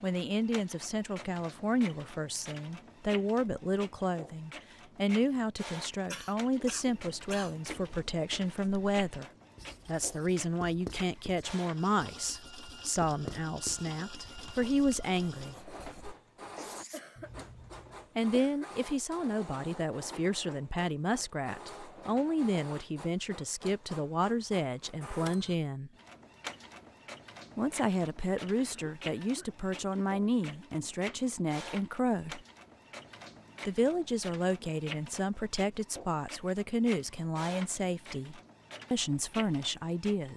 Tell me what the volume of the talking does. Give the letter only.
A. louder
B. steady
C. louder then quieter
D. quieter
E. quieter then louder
B.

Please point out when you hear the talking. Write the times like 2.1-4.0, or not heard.
0.0-9.2, 9.8-15.6, 18.1-25.9, 27.6-32.4, 33.6-40.3.